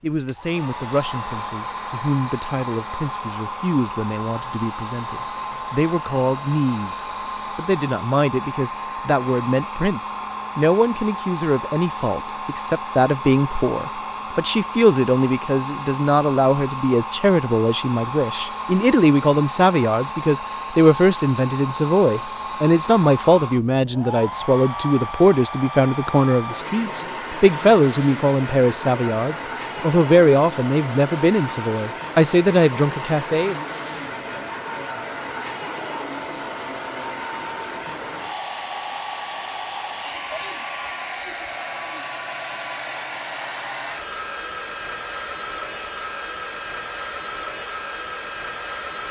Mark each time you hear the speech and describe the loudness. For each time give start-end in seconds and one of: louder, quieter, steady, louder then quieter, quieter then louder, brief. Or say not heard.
0.0-33.6 louder.